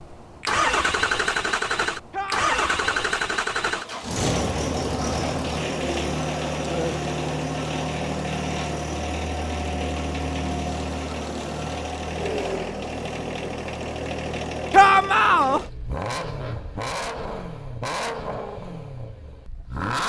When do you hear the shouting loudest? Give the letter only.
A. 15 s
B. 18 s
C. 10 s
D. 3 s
A.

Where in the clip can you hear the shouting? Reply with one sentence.
You can hear the shouting from 2.1 to 3.0 s and from 14.7 to 15.6 s.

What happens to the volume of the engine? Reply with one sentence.
The loudness of the engine goes down.